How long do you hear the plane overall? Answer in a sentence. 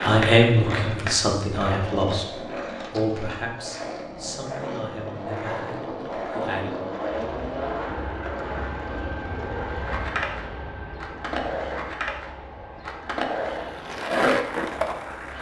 The plane can be heard for 8 seconds in total.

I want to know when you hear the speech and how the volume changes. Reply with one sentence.
You can hear the speech from 0.0 to 6.7 s, getting quieter.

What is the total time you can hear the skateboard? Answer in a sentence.
You can hear the skateboard for 15 seconds altogether.